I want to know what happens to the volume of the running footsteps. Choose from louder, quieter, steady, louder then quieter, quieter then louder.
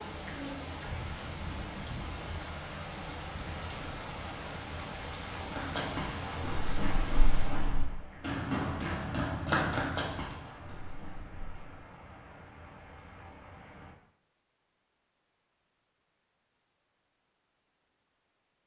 louder then quieter.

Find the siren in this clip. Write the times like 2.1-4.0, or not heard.
not heard.